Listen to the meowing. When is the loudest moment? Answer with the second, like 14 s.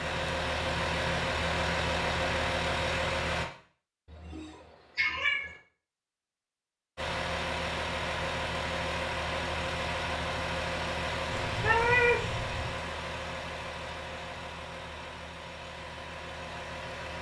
12 s.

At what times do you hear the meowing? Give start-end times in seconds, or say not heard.
4.1-5.5, 11.3-12.8.